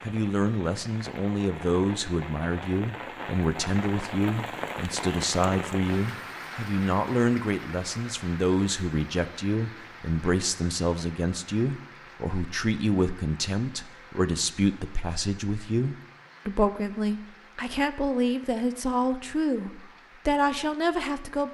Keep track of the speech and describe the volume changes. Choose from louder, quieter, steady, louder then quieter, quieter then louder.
steady.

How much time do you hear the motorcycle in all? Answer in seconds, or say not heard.
not heard.